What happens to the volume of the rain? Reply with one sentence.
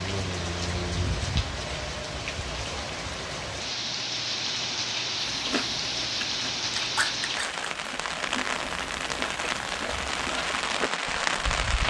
The volume of the rain stays about the same.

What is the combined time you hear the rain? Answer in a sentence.
The rain can be heard for 12 seconds in total.